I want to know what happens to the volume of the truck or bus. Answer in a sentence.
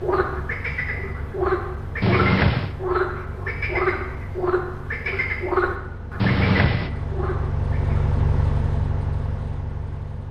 The volume of the truck or bus goes up.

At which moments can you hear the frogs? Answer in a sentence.
The frogs can be heard from 0.0 to 8.1 s.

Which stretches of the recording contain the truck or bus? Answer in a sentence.
You can hear the truck or bus from 0.0 to 10.2 s.